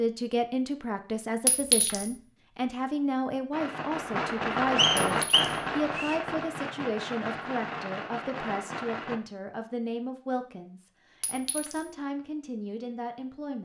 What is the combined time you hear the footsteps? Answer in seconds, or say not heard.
not heard.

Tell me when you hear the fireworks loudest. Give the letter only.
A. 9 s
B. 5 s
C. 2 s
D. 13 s
B.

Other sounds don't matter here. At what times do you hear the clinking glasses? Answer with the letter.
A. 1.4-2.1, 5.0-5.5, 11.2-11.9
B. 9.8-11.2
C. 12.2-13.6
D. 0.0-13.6
A.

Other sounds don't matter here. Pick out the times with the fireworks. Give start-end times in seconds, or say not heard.
3.5-9.2.